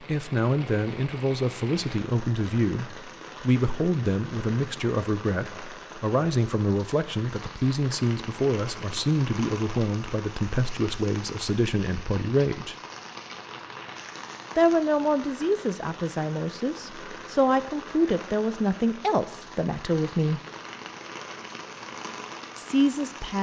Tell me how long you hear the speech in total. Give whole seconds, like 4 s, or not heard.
19 s.